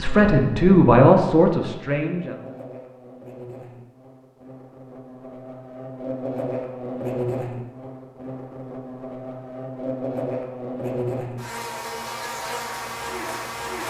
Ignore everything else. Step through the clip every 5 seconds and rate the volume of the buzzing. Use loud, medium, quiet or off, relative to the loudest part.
medium, loud, loud.